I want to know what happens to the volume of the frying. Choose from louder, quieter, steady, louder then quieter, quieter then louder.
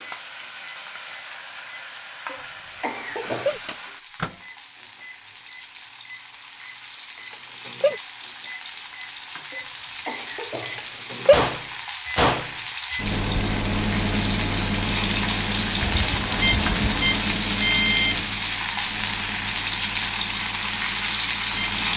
louder.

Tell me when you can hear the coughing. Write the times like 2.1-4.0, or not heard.
2.2-3.5, 9.5-10.9, 15.8-17.2.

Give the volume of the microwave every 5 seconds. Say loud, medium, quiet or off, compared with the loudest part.
medium, medium, loud, loud, quiet.